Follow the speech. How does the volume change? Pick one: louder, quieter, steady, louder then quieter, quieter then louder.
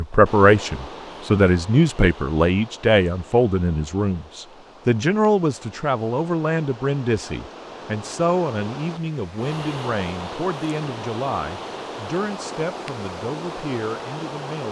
quieter.